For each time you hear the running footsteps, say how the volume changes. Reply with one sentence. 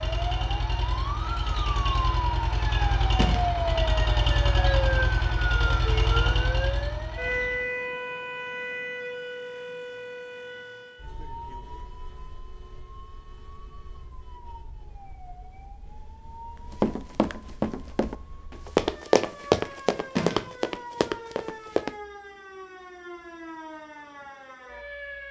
The running footsteps can be heard from 16.7 to 21.9 s, getting louder then quieter.